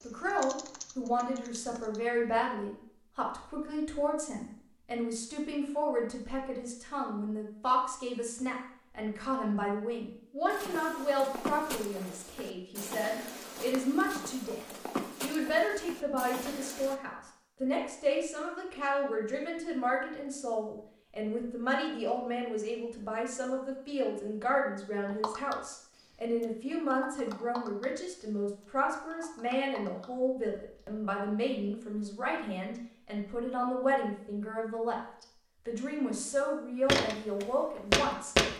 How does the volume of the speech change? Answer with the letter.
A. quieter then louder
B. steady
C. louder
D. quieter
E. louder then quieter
B.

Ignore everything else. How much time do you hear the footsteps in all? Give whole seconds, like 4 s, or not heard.
8 s.